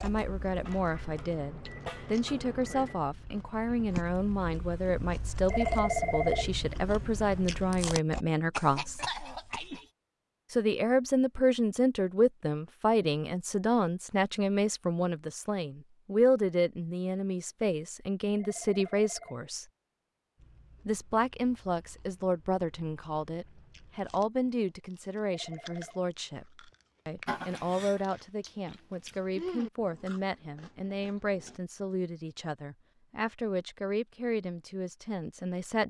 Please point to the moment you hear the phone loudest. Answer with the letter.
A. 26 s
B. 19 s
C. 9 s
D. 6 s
D.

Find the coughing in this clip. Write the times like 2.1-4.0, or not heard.
8.5-9.8, 27.2-28.0.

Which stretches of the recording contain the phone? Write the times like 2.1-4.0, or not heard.
5.5-6.5, 18.4-19.4, 25.2-26.0.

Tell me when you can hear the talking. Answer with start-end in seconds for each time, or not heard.
0.0-9.1, 10.5-19.6, 20.9-35.8.